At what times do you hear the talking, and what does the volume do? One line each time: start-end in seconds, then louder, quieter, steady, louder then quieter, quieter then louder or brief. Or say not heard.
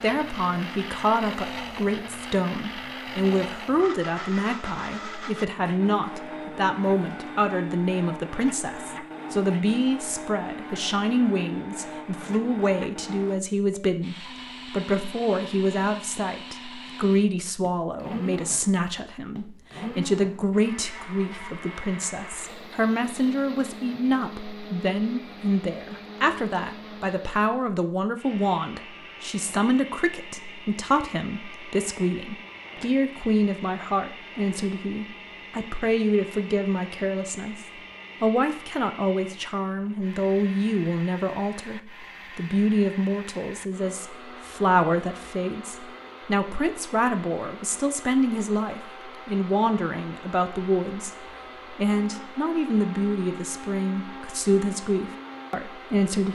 0.0-56.2 steady.